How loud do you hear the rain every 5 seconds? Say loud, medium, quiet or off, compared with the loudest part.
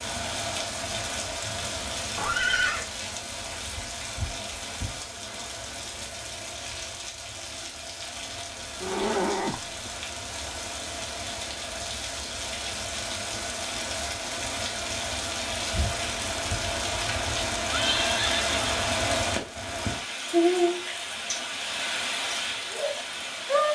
medium, medium, medium, loud, loud.